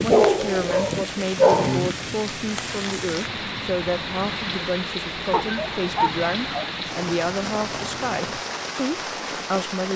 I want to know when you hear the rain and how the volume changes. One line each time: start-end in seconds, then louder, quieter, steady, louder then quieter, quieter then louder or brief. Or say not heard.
0.0-9.9 steady.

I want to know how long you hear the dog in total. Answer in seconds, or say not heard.
3 s.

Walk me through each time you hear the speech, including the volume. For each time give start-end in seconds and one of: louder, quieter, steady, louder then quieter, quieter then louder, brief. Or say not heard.
0.0-9.9 steady.